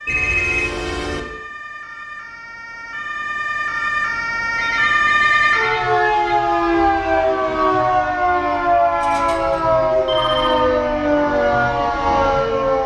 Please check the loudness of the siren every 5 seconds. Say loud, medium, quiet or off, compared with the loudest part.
medium, loud, loud.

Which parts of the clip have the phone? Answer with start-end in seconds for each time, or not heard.
0.1-1.2, 4.6-6.3, 9.0-10.7.